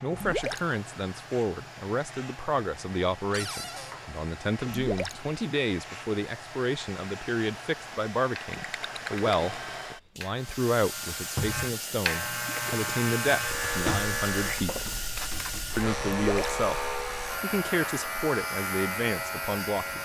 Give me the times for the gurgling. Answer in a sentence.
You can hear the gurgling from 0.1 to 0.7 s, from 4.7 to 5.2 s, from 8.5 to 9.9 s, from 12.4 to 13.8 s and from 16.1 to 16.6 s.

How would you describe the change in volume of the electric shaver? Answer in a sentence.
The loudness of the electric shaver goes up.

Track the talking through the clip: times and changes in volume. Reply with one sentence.
You can hear the talking from 0.0 to 14.8 s, at a steady volume; briefly from 15.8 to 16.8 s; and briefly from 17.4 to 20.0 s.